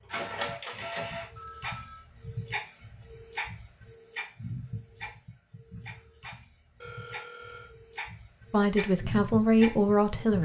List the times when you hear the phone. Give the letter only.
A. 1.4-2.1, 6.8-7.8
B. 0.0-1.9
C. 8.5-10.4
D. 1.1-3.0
A.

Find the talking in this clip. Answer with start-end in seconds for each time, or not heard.
8.5-10.4.